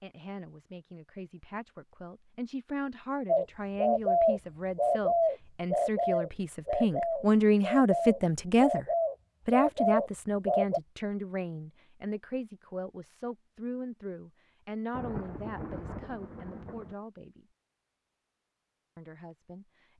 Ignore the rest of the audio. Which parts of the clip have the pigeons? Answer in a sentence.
You can hear the pigeons from 3.2 to 10.8 s.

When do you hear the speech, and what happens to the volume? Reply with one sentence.
The speech can be heard from 0.0 to 8.8 s, getting louder; from 9.4 to 17.4 s, getting quieter; and briefly from 18.9 to 19.9 s.